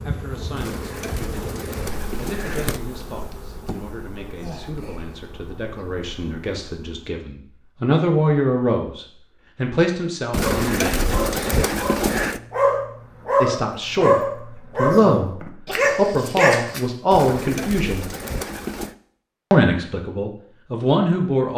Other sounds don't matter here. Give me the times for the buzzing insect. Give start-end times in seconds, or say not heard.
0.0-7.2, 12.8-15.6.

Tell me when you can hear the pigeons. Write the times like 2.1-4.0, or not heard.
0.6-2.8, 10.3-12.4, 17.1-18.9.